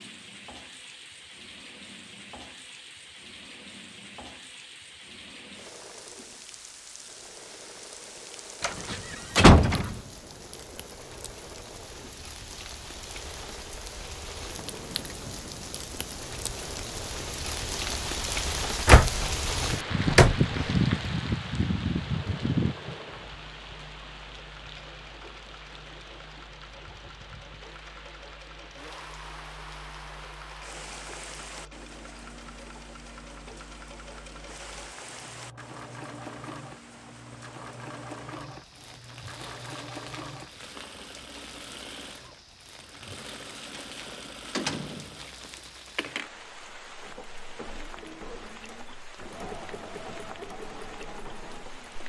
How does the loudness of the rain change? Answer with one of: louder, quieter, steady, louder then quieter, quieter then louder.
louder then quieter.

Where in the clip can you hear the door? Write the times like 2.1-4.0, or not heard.
8.6-10.0, 18.9-20.4, 43.7-45.5.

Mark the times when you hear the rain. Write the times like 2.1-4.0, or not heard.
0.0-52.0.